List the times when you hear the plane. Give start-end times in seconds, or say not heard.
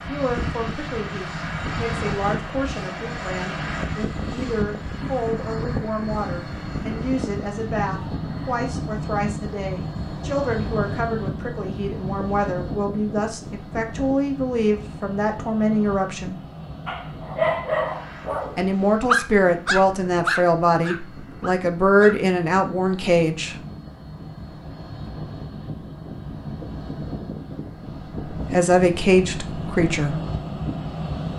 0.0-31.3.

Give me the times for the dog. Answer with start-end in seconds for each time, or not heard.
16.9-22.1.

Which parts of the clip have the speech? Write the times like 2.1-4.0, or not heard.
0.1-16.4, 18.6-23.6, 28.3-30.2.